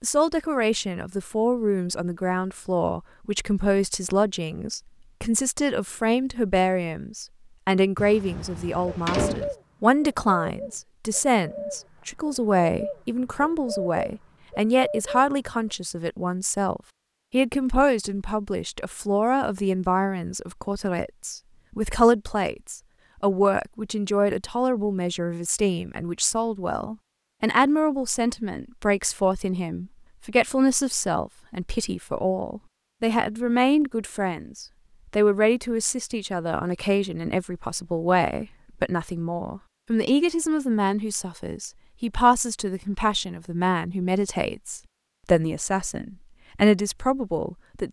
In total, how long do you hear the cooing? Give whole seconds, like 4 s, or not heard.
7 s.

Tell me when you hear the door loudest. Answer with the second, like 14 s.
9 s.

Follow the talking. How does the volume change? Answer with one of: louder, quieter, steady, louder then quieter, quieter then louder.
steady.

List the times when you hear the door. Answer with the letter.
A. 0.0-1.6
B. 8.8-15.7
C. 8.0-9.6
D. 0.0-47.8
C.